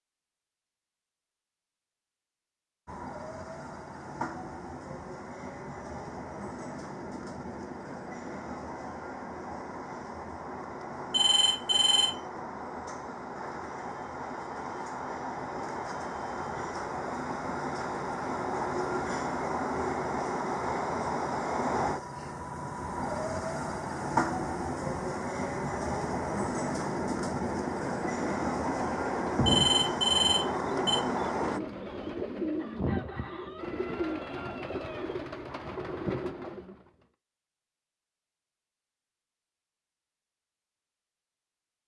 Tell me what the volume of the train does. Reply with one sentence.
The volume of the train goes up.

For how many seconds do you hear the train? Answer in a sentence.
The train can be heard for 29 seconds in total.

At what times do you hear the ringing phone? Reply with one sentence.
You can hear the ringing phone from 11.1 to 12.2 s and from 29.4 to 31.0 s.